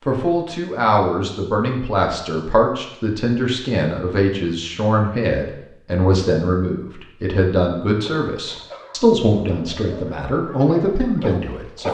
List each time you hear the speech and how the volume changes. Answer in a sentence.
You can hear the speech from 0.1 to 11.8 s, at a steady volume.